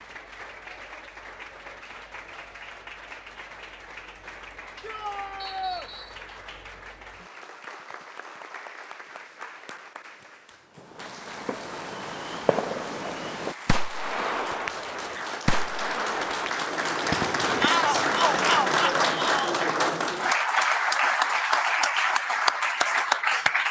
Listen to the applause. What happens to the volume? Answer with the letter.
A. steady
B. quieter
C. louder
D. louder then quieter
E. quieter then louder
C.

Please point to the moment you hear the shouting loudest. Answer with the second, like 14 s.
18 s.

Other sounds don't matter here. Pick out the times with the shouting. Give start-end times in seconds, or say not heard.
4.8-5.9, 17.6-19.6.